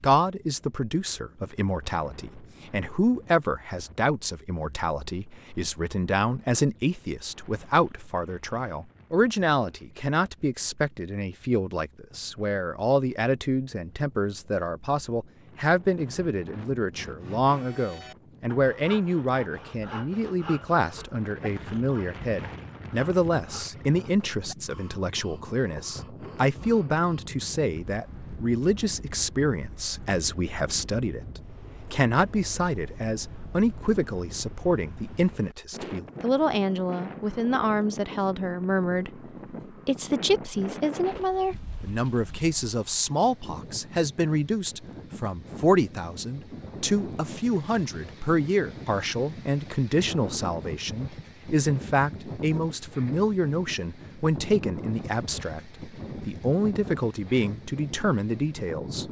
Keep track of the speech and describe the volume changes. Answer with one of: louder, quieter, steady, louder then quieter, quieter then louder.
steady.